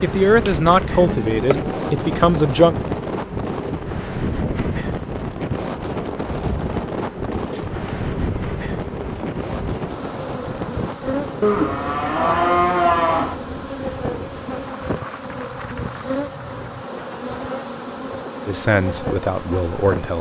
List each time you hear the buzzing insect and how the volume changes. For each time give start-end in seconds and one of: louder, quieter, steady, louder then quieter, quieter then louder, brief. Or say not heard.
0.0-20.1 steady.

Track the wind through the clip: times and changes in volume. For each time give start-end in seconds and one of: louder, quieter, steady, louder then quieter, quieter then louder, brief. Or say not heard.
0.0-20.1 quieter.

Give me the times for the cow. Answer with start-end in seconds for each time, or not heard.
0.5-1.9, 11.4-13.3.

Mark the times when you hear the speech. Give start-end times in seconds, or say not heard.
0.0-2.8, 18.4-20.1.